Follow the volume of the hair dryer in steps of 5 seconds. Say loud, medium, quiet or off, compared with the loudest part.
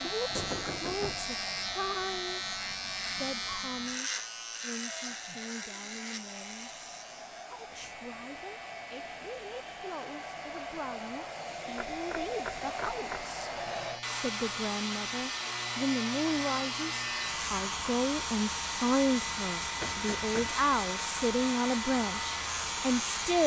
medium, medium, loud, loud, loud.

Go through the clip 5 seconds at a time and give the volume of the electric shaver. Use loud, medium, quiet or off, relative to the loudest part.
loud, medium, medium, loud, loud.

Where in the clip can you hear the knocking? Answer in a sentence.
The knocking can be heard from 0.3 to 1.4 s, from 11.8 to 13.2 s and from 19.8 to 20.5 s.